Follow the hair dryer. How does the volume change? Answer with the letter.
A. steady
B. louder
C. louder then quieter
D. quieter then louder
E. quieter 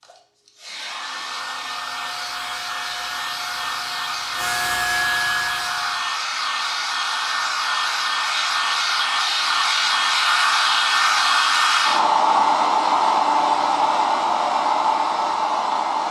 B.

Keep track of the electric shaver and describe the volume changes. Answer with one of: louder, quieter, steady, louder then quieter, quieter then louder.
louder.